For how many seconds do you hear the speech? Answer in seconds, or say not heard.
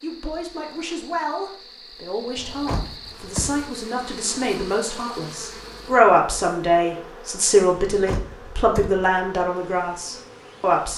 11 s.